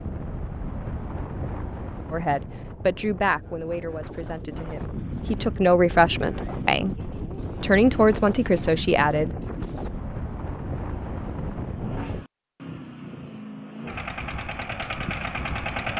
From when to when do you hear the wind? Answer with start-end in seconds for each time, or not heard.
0.0-12.2.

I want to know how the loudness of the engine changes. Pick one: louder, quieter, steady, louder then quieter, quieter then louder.
louder.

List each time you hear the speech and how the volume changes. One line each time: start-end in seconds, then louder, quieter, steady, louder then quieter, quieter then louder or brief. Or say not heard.
2.1-7.0 quieter then louder
7.6-9.3 brief.